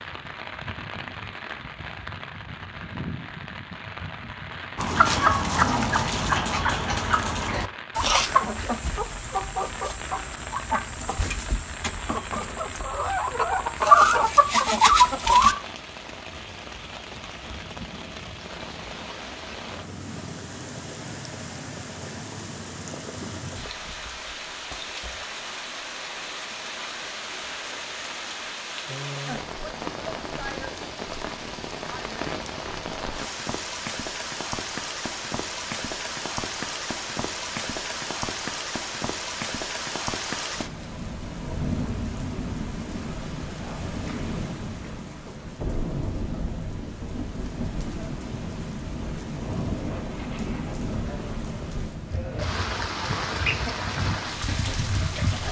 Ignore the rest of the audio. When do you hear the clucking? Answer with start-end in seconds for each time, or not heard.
4.8-15.6, 52.1-55.4.